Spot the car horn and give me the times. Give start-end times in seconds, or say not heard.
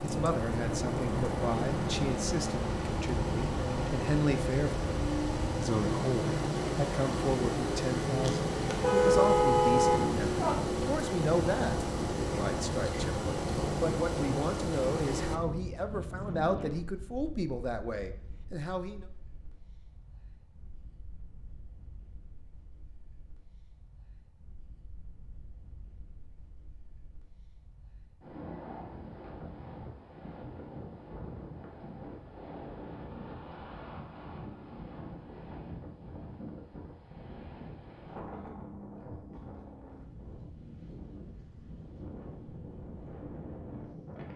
8.2-10.6.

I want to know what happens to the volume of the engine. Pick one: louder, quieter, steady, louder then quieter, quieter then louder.
steady.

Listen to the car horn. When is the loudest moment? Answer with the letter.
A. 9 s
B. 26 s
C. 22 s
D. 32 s
A.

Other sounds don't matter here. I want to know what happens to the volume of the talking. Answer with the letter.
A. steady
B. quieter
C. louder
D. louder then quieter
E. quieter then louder
A.